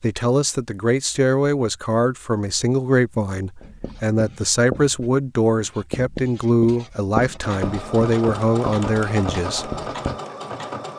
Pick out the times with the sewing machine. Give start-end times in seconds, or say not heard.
7.4-10.9.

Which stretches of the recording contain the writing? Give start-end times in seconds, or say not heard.
3.6-10.2.